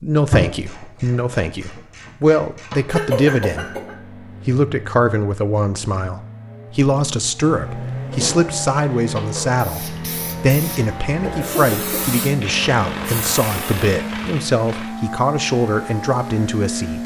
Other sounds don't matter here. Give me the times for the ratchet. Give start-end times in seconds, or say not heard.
0.3-3.0, 7.7-9.6, 12.4-14.9.